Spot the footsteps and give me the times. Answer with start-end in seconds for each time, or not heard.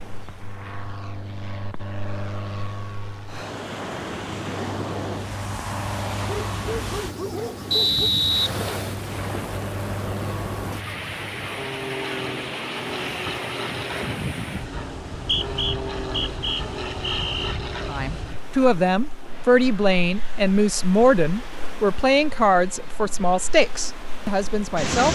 not heard.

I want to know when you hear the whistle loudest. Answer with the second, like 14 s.
8 s.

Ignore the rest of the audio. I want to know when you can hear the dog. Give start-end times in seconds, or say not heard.
6.5-8.1.